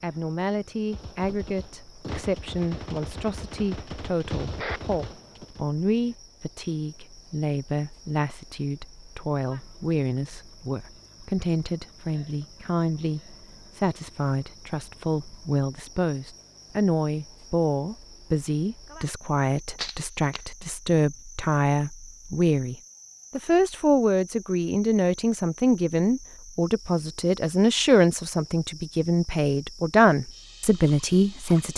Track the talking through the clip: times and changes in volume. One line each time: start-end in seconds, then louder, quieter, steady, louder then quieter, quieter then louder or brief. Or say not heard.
0.0-31.7 louder.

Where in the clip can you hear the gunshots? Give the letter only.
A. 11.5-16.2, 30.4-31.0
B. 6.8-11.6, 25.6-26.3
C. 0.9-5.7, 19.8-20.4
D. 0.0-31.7
C.